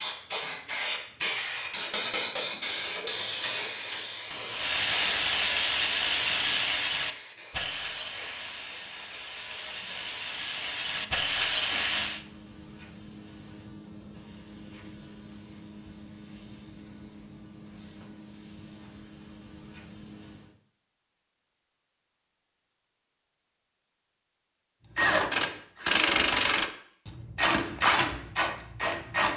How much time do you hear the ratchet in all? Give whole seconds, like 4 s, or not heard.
12 s.